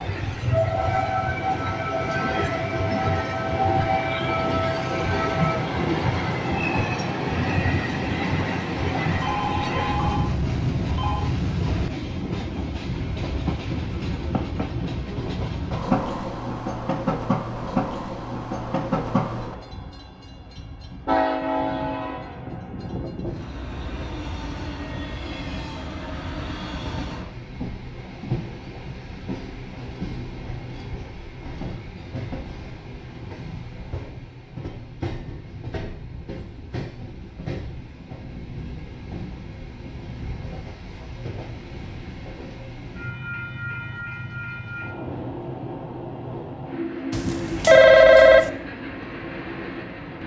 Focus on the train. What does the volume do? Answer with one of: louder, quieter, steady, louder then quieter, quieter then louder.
quieter.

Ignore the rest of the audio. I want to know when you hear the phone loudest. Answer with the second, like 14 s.
48 s.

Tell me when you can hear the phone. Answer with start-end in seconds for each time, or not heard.
9.1-11.3, 47.1-48.5.